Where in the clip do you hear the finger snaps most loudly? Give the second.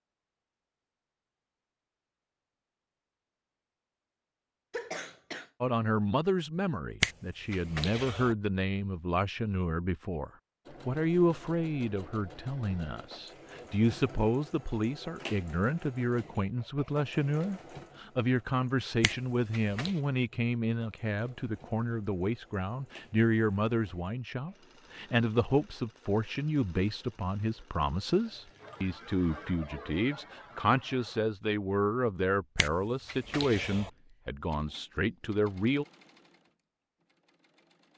7 s.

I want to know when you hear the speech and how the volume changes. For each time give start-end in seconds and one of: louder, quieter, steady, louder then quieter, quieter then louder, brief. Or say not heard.
5.6-35.9 steady.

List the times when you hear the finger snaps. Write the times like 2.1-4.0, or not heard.
7.0-8.3, 19.0-19.9, 32.5-33.9.